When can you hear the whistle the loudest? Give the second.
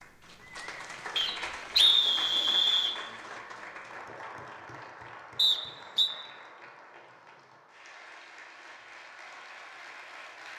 2 s.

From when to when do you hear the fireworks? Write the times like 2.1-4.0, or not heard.
not heard.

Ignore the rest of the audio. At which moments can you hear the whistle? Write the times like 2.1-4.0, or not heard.
1.1-3.0, 5.3-6.1.